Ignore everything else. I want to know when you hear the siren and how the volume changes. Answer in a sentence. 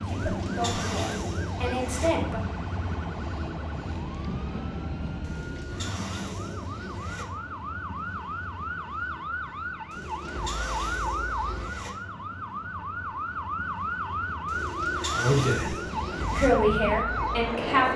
You can hear the siren from 0.0 to 17.9 s, getting louder.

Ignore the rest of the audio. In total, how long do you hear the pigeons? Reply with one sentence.
You can hear the pigeons for 8 seconds altogether.